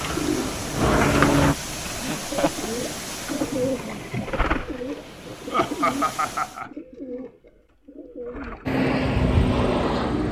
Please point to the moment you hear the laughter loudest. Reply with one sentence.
The volume of the laughter peaks at 6 seconds.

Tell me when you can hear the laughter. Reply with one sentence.
You can hear the laughter from 2.0 to 2.7 s and from 5.5 to 6.7 s.